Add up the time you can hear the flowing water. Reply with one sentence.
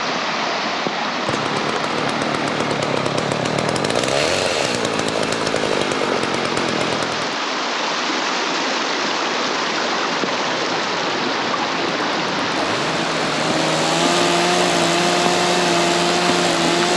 You can hear the flowing water for 17 seconds altogether.